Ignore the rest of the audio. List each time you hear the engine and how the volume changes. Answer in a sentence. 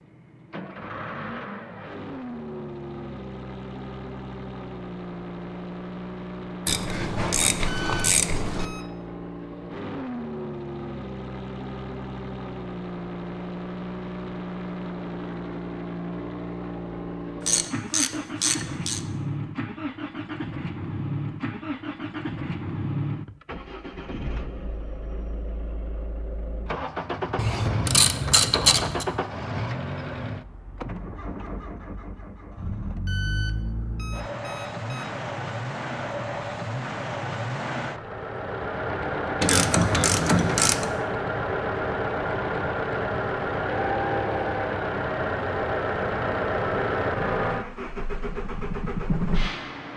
You can hear the engine from 0.0 to 49.9 s, getting louder.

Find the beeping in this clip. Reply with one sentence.
The beeping can be heard from 7.7 to 8.9 s and from 33.0 to 35.0 s.